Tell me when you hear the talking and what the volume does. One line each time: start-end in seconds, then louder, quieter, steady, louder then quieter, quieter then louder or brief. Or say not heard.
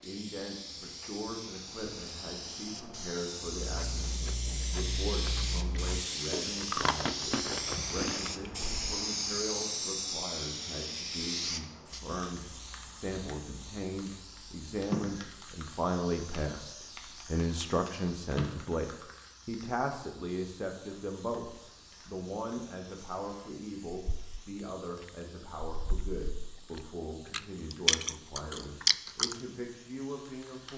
0.0-30.7 louder then quieter.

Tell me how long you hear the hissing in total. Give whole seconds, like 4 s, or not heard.
31 s.